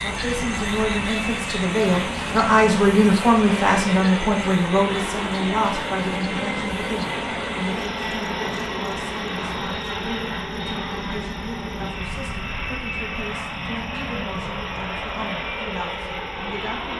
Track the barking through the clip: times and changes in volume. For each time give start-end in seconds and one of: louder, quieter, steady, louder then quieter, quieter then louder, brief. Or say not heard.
not heard.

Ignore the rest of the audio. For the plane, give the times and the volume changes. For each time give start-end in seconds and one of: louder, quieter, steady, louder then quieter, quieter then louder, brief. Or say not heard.
0.0-16.9 steady.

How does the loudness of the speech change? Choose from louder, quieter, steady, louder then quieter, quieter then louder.
quieter.